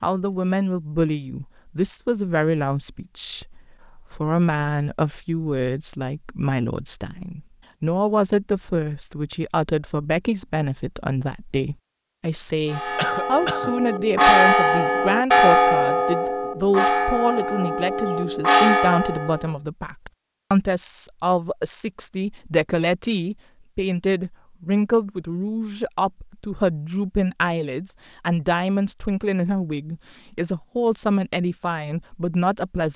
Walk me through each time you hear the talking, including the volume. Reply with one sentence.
The talking can be heard from 0.0 to 32.9 s, at a steady volume.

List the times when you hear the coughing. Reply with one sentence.
The coughing can be heard from 12.9 to 13.8 s.